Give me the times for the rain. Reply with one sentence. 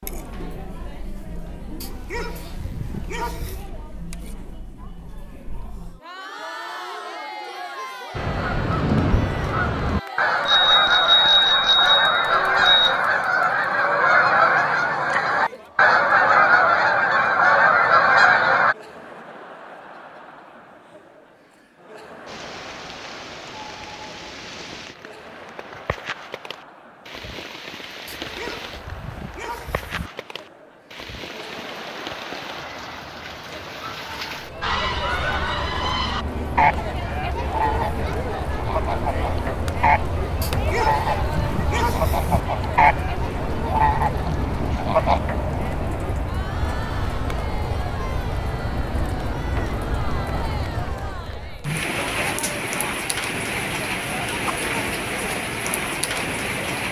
The rain can be heard from 22.2 to 56.8 s.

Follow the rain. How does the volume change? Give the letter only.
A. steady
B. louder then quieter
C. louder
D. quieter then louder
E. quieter
C.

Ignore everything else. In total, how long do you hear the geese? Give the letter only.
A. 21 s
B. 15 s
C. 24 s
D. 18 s
A.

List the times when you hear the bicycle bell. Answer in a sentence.
The bicycle bell can be heard from 10.4 to 13.0 s.